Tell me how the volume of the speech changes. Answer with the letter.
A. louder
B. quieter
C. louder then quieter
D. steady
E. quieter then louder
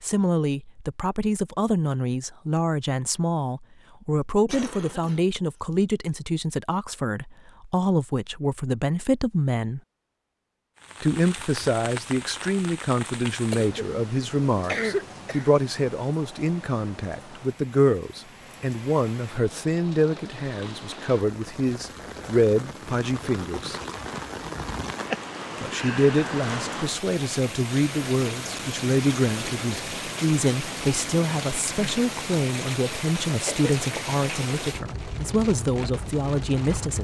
D.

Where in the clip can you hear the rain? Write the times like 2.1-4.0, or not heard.
10.8-36.9.